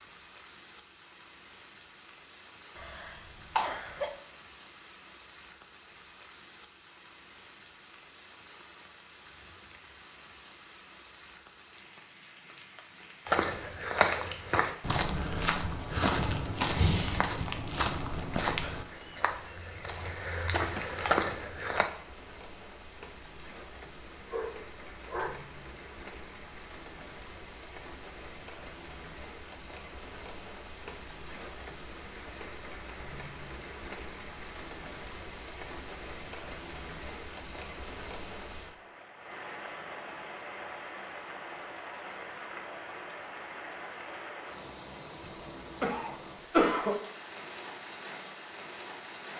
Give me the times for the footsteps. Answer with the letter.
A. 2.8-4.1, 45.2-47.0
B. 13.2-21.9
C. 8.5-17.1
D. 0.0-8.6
B.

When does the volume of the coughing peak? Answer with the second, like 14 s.
47 s.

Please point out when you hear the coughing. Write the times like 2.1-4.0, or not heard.
2.8-4.1, 45.2-47.0.